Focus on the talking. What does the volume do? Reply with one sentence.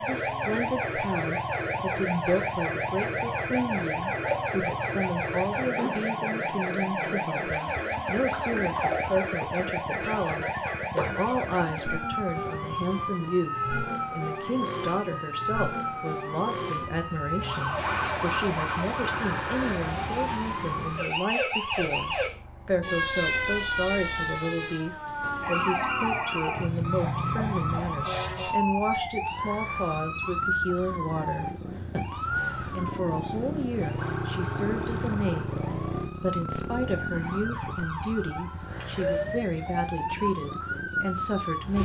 The loudness of the talking stays about the same.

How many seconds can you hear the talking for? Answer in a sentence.
The talking can be heard for 42 seconds in total.